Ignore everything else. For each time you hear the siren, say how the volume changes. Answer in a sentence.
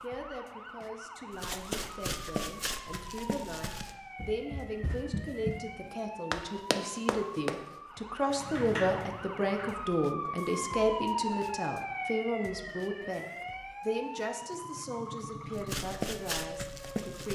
You can hear the siren from 0.0 to 17.2 s, getting louder then quieter.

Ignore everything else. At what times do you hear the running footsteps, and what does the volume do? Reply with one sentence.
You can hear the running footsteps from 1.3 to 7.7 s, getting quieter then louder; and briefly from 15.5 to 17.2 s.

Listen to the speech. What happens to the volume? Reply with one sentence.
The volume of the speech goes up, then down.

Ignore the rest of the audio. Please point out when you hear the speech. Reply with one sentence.
The speech can be heard from 0.0 to 13.2 s and from 13.8 to 17.2 s.